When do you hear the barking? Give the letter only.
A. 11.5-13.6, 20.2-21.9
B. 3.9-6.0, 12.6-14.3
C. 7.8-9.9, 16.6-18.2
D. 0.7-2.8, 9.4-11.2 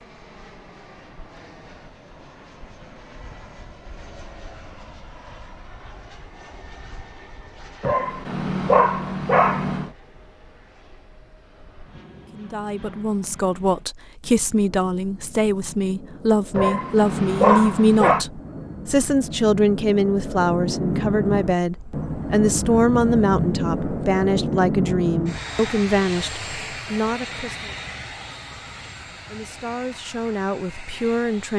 C.